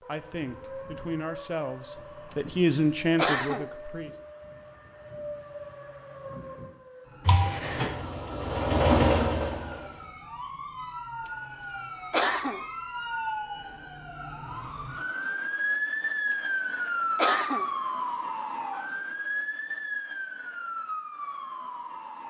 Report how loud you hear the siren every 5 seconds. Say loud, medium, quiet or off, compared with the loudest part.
quiet, quiet, medium, loud, medium.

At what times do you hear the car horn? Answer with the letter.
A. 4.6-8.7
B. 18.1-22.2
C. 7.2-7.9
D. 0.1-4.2
C.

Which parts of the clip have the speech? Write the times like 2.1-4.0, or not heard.
0.1-4.2.